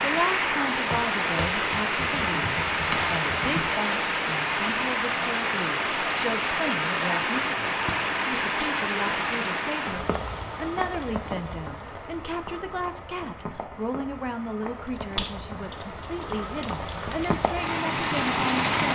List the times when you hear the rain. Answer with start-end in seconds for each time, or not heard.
0.0-18.9.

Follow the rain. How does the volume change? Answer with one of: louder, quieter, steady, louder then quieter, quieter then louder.
quieter then louder.